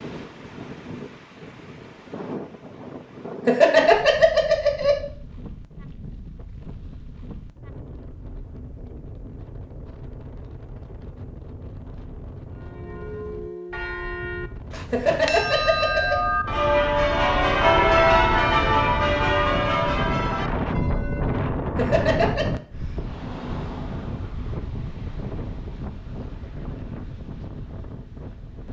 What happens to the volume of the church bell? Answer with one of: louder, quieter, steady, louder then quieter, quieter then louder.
louder then quieter.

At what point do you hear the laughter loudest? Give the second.
4 s.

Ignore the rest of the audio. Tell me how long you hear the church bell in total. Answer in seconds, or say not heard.
9 s.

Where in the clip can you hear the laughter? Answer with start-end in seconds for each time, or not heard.
3.5-5.0, 14.9-16.1, 21.8-22.4.